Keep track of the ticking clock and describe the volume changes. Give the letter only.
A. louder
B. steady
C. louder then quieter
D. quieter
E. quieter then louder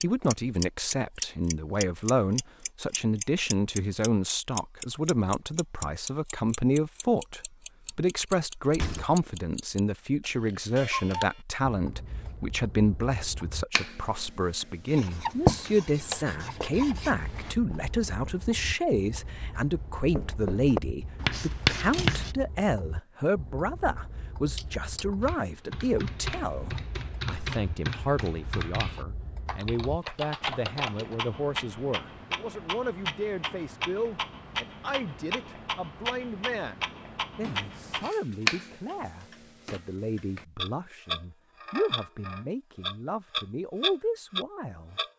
E.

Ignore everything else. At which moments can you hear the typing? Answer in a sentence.
The typing can be heard from 24.6 to 31.1 s.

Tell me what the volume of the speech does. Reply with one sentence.
The volume of the speech goes down.